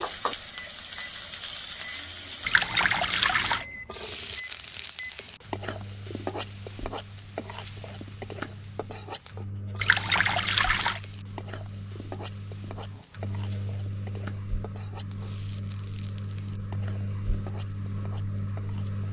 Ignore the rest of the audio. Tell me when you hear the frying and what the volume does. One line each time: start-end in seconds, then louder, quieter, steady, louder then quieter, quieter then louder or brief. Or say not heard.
0.0-19.0 quieter.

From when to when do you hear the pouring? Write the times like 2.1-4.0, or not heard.
2.5-3.6, 9.8-11.0.